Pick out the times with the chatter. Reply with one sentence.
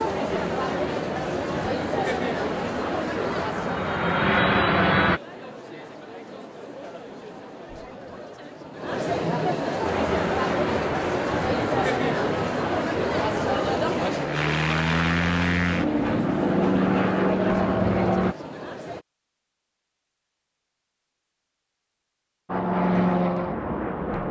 The chatter can be heard from 0.0 to 19.1 s.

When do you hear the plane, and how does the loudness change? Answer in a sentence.
The plane can be heard from 0.0 to 5.2 s, getting louder; from 9.8 to 18.4 s, getting louder; and briefly from 22.4 to 24.2 s.